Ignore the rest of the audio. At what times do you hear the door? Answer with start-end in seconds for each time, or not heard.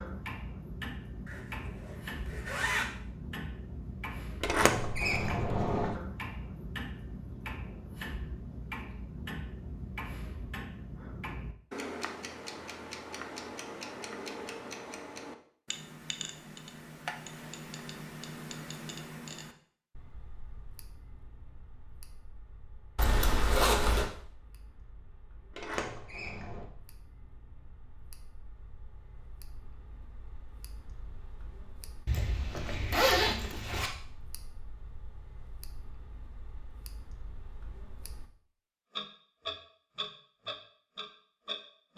4.4-6.0, 25.5-26.6.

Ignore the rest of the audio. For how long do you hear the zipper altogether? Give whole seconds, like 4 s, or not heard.
5 s.